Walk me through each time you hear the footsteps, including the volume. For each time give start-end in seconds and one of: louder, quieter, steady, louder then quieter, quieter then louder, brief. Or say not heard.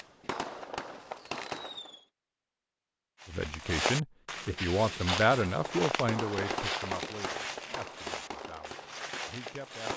3.2-9.9 quieter.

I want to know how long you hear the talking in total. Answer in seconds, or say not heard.
7 s.